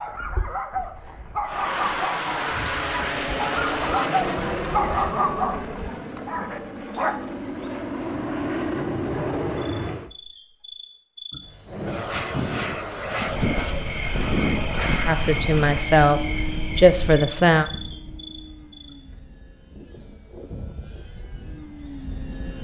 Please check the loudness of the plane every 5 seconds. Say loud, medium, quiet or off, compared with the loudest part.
loud, loud, loud, medium, quiet.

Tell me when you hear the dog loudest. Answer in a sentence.
The volume of the dog peaks at 5 seconds.